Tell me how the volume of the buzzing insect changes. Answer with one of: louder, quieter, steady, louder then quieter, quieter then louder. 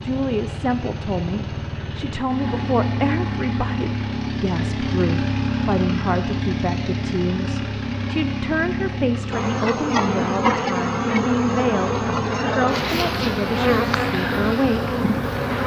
steady.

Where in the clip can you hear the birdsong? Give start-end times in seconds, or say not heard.
not heard.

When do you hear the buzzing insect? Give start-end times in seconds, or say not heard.
9.3-15.6.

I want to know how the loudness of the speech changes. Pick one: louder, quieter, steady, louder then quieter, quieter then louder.
steady.